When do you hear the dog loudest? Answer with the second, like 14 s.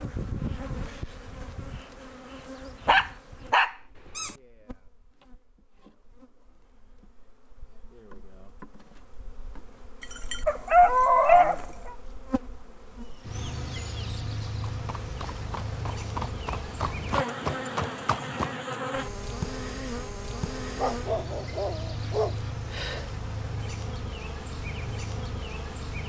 11 s.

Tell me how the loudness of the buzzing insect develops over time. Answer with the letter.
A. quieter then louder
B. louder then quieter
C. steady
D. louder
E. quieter
A.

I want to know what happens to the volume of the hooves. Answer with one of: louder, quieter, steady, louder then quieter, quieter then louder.
louder.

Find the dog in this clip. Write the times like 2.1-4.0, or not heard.
2.9-4.3, 10.0-11.7, 20.8-23.1.